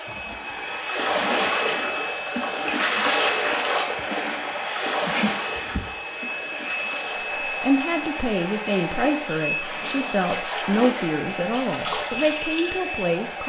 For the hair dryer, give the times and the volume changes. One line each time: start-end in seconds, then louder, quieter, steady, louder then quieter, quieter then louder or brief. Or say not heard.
0.0-13.4 steady.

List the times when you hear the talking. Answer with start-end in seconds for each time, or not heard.
7.5-13.4.